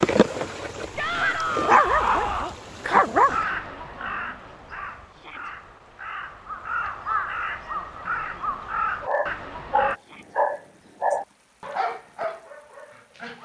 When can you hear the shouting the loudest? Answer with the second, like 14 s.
2 s.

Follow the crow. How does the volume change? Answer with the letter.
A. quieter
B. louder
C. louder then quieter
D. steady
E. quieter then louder
E.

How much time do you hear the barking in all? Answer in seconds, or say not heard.
8 s.